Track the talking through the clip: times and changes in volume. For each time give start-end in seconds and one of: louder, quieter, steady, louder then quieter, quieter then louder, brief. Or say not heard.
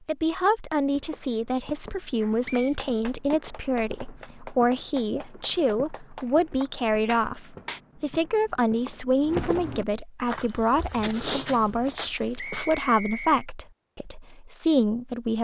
0.1-15.3 steady.